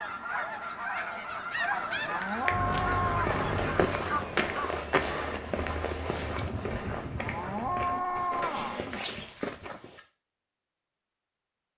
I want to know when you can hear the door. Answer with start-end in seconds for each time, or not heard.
2.5-4.1, 7.8-8.8.